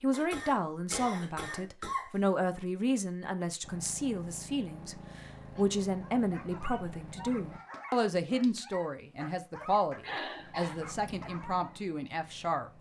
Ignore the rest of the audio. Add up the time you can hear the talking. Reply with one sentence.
The talking can be heard for 13 seconds in total.